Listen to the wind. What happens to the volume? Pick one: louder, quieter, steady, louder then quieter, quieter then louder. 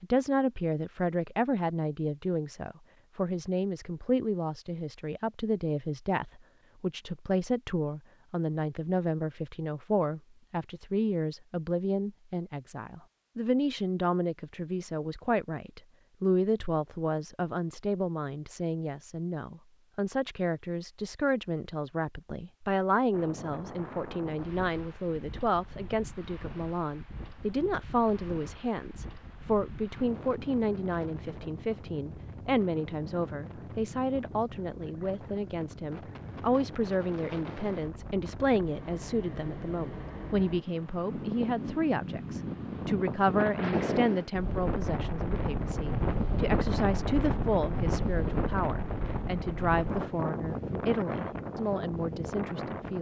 louder.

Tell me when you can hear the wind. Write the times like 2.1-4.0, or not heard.
23.1-52.9.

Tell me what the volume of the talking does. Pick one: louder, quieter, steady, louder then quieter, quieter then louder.
steady.